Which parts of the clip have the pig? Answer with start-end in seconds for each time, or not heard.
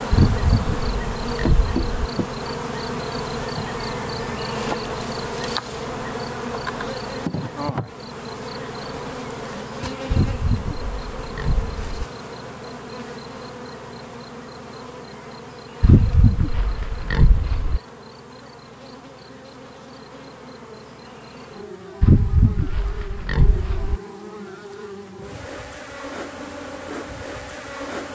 0.1-1.9, 10.1-12.1, 15.8-17.8, 22.0-24.0.